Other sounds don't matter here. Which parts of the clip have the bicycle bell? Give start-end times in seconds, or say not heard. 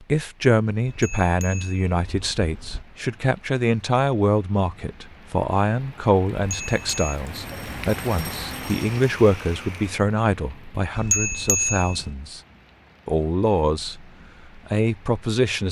0.8-2.9, 6.5-7.2, 10.9-12.1.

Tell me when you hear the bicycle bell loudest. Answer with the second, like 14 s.
11 s.